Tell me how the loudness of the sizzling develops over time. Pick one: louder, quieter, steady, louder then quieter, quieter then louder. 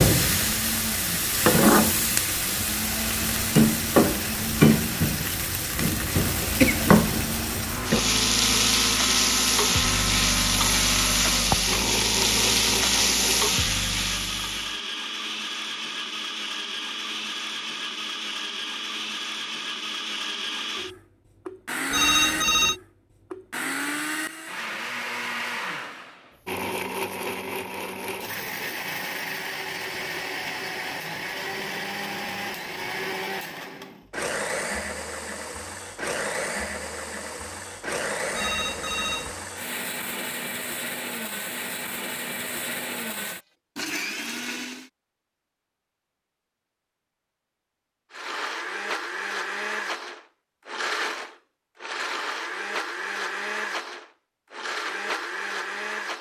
steady.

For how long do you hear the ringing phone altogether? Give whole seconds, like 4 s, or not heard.
2 s.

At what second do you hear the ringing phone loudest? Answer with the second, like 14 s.
22 s.